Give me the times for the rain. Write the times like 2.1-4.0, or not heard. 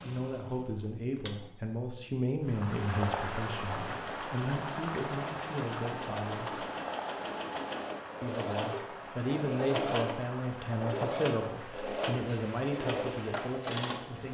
2.5-14.2.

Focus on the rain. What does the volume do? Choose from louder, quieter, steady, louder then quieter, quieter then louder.
quieter.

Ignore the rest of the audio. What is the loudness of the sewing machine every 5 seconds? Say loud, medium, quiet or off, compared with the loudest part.
medium, loud, loud.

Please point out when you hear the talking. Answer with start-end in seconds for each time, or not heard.
0.0-6.7, 8.2-14.2.